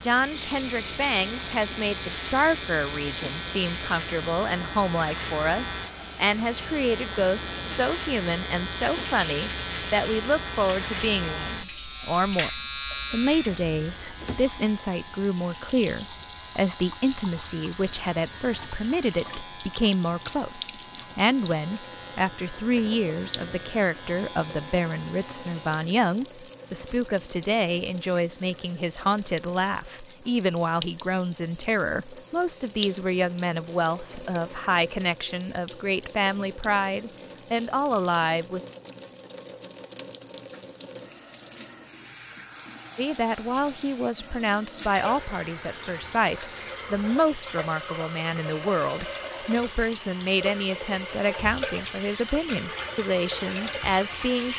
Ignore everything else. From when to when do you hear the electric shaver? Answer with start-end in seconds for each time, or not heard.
0.0-25.9.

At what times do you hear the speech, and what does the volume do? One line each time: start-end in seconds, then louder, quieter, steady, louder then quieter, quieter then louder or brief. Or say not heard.
0.0-12.5 steady
13.1-38.6 steady
43.0-54.5 steady.